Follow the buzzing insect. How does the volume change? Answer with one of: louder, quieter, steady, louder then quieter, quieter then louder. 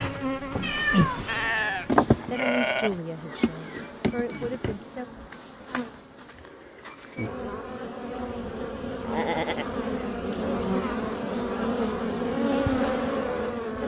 quieter then louder.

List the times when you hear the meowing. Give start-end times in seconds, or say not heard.
0.6-1.5.